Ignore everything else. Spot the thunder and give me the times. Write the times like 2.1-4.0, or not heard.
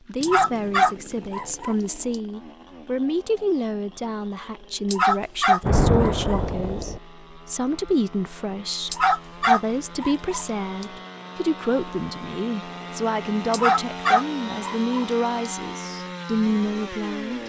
5.6-7.0.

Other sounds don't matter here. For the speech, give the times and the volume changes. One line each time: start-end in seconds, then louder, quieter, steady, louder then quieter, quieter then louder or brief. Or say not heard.
0.1-17.4 steady.